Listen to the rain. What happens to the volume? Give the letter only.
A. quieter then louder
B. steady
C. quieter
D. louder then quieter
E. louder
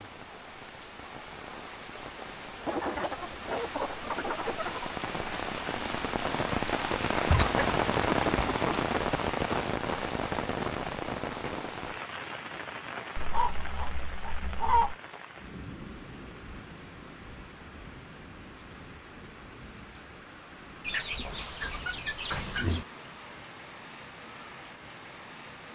D.